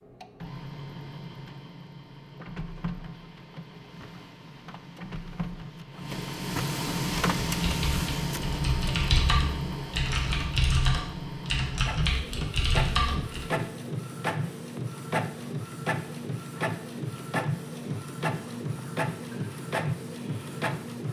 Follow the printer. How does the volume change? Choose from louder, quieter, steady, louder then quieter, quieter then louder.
louder.